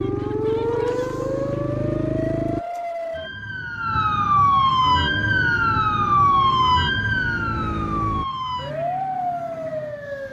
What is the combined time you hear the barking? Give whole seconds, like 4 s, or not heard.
not heard.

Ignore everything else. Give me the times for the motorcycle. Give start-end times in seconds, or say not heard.
0.0-2.6, 4.8-8.2.